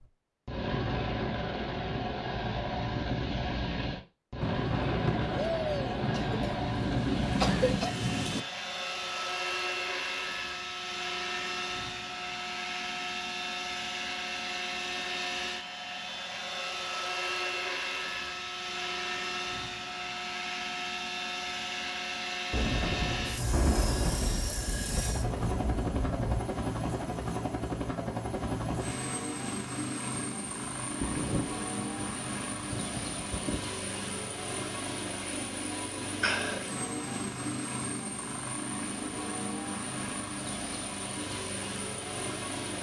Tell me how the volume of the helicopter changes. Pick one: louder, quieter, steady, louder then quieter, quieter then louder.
steady.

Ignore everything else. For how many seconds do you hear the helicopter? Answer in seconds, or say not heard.
43 s.